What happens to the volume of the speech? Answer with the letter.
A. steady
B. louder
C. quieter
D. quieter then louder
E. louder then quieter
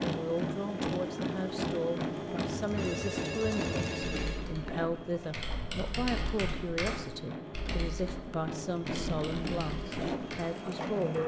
A.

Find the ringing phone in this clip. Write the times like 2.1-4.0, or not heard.
2.8-4.5.